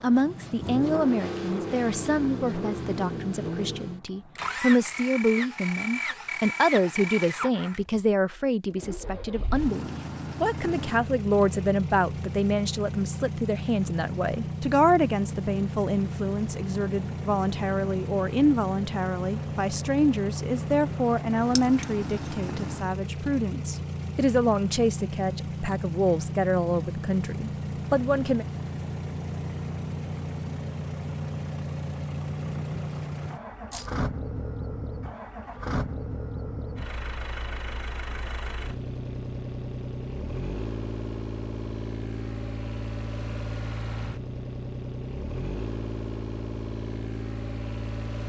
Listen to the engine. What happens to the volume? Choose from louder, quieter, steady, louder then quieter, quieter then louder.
steady.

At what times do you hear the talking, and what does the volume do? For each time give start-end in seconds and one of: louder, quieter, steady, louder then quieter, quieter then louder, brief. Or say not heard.
0.0-28.4 steady.